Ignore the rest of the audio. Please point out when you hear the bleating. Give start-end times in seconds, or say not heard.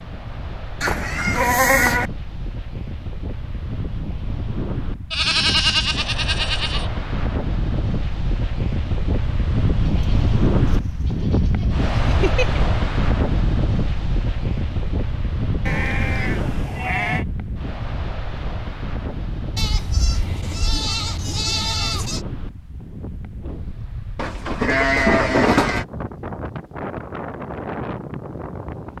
0.8-2.1, 5.1-6.9, 9.8-12.6, 15.7-17.2, 19.6-22.2, 24.1-25.9.